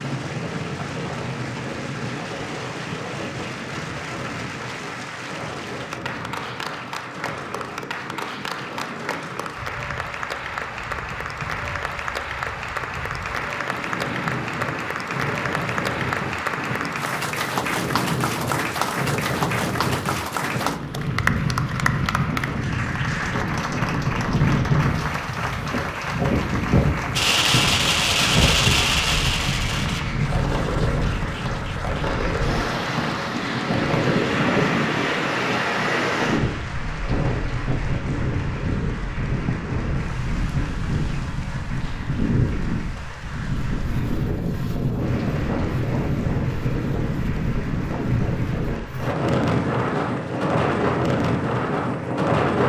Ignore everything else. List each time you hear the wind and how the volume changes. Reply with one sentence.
The wind can be heard from 0.0 to 52.6 s, getting louder.